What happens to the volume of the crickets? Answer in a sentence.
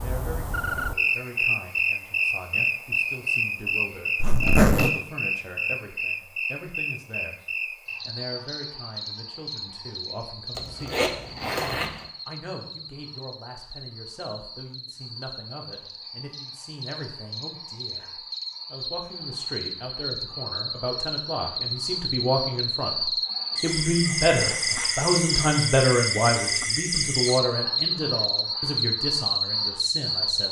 The volume of the crickets goes down, then up.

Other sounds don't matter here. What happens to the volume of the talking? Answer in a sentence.
The volume of the talking goes up.